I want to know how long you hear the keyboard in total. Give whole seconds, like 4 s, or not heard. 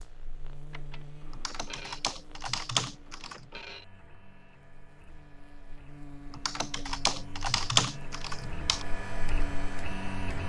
5 s.